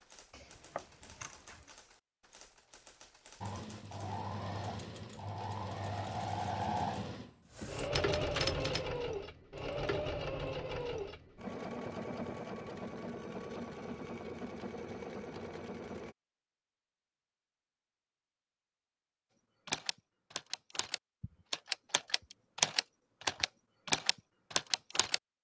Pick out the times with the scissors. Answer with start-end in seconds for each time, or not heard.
0.3-1.8.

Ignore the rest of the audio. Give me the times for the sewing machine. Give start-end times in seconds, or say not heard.
3.4-16.1.